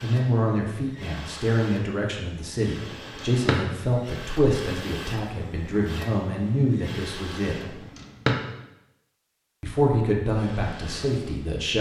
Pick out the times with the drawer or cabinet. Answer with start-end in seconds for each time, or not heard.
2.9-3.6, 7.7-8.3.